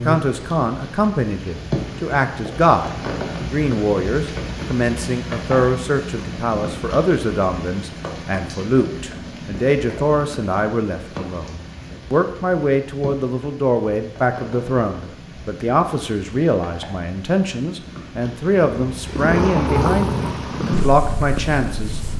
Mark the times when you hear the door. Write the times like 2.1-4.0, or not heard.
19.2-20.4.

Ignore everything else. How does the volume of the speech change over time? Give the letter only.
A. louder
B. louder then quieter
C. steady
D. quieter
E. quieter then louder
C.